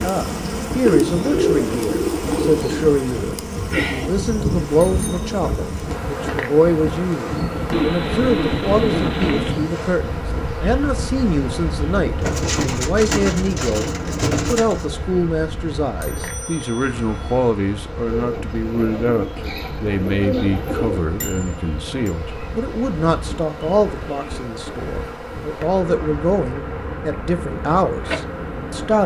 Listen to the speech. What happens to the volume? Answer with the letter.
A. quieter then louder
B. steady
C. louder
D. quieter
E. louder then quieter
B.